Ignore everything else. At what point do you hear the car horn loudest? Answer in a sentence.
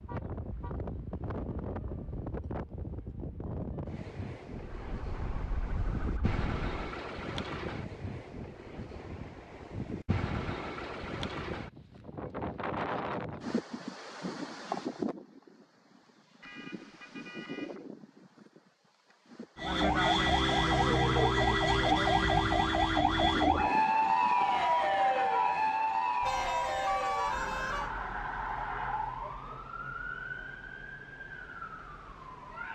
The loudest moment of the car horn is at 27 seconds.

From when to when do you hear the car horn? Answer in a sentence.
You can hear the car horn from 0.1 to 0.8 s, from 16.4 to 17.9 s and from 26.2 to 27.9 s.